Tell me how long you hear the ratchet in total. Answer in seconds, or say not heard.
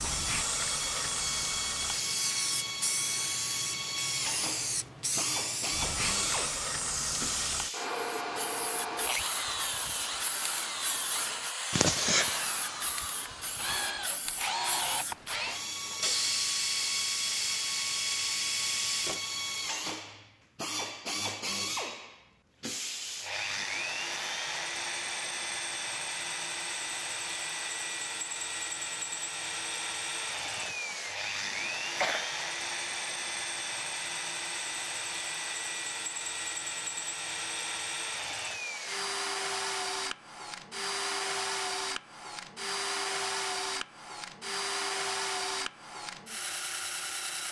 not heard.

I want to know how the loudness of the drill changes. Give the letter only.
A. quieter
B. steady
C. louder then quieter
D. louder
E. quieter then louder
B.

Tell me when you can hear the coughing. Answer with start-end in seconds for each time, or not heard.
11.8-12.3, 30.6-32.3.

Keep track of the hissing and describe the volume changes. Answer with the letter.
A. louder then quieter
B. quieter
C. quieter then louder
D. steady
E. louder
C.